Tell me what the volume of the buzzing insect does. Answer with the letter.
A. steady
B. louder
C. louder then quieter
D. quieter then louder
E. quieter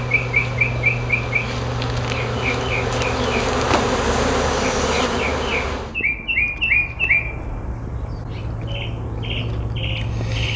B.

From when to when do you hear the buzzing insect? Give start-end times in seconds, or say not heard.
0.0-6.0.